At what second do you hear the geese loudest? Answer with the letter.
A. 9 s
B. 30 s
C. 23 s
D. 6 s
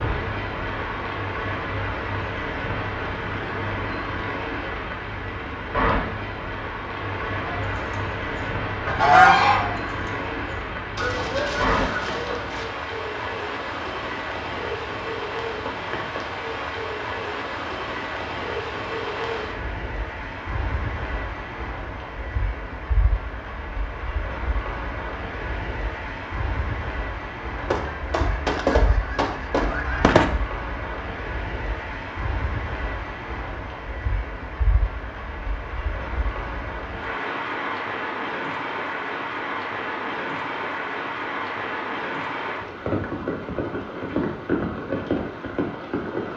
A.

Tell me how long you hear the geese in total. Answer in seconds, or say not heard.
8 s.